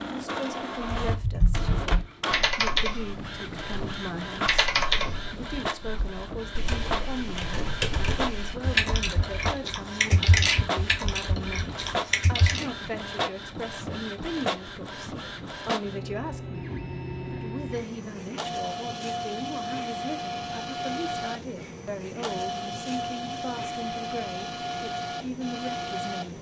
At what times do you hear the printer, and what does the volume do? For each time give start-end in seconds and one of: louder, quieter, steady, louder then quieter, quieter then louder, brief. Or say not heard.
0.0-26.3 steady.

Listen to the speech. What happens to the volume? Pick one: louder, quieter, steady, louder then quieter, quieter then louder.
steady.